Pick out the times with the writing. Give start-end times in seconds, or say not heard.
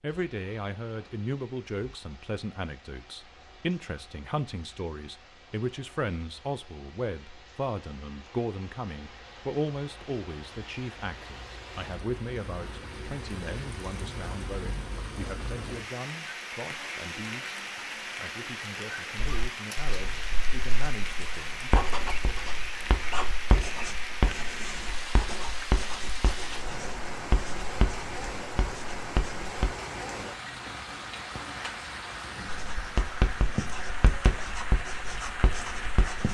19.1-29.7, 32.5-36.3.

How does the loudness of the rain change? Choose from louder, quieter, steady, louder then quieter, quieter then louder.
louder.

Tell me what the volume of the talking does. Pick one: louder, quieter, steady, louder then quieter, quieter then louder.
quieter.